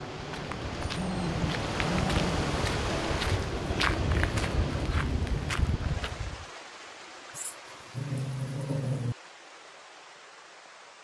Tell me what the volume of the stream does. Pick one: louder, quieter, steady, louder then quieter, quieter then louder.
quieter.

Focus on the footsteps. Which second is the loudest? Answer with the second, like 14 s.
4 s.